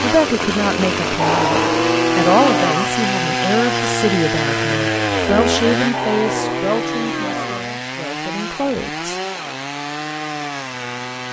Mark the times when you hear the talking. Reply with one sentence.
You can hear the talking from 0.0 to 9.1 s.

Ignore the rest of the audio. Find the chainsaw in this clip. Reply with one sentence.
The chainsaw can be heard from 0.0 to 11.2 s.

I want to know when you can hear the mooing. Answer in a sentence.
The mooing can be heard from 1.1 to 3.0 s and from 5.9 to 7.7 s.